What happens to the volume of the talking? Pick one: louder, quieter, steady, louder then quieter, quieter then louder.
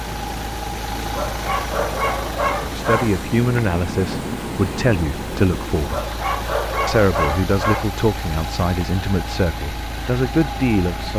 steady.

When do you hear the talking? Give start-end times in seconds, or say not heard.
2.5-6.0, 6.8-11.1.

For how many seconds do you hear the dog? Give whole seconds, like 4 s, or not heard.
4 s.